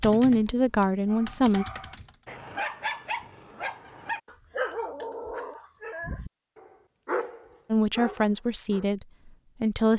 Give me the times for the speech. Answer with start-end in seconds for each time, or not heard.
0.0-1.6, 7.7-9.9.